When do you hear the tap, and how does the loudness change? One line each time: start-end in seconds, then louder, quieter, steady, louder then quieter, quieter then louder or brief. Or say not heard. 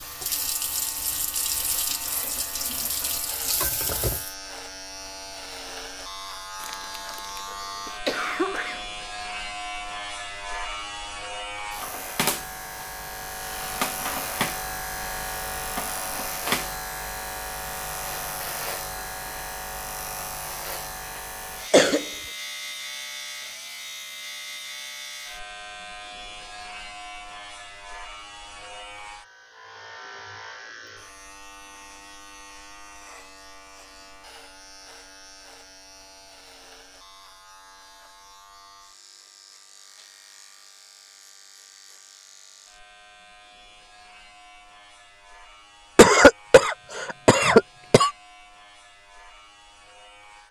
0.0-4.3 steady.